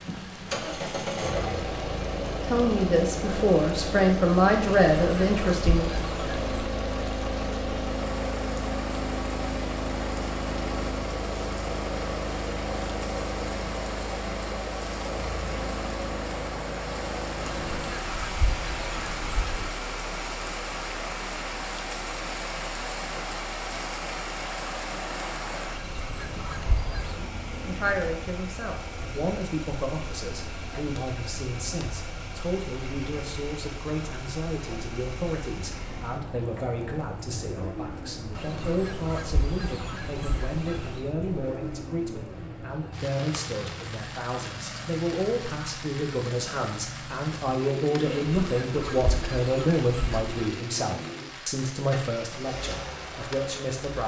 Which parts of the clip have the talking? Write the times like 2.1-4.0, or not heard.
2.5-5.9, 27.1-54.0.